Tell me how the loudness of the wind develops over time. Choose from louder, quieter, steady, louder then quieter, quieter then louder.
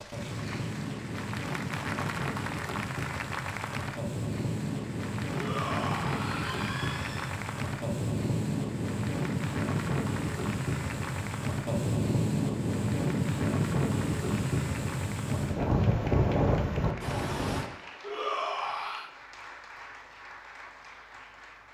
louder.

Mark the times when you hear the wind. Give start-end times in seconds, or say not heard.
0.0-17.7.